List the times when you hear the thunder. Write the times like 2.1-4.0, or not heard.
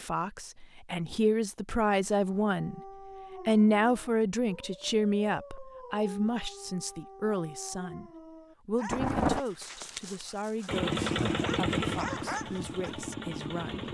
8.8-9.4.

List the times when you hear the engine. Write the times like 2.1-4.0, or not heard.
10.7-13.8.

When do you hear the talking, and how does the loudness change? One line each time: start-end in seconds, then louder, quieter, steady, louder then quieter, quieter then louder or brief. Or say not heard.
0.0-2.8 brief
3.5-13.8 quieter.